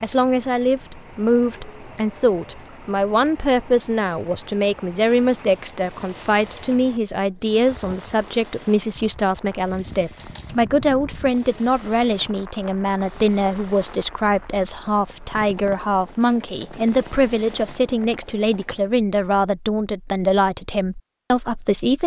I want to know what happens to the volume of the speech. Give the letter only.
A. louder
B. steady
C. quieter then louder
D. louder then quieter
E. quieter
B.